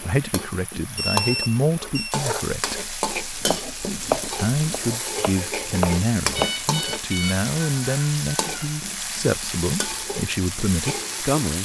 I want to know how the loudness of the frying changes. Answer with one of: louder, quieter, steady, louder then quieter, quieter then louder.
steady.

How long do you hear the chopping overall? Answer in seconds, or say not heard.
3 s.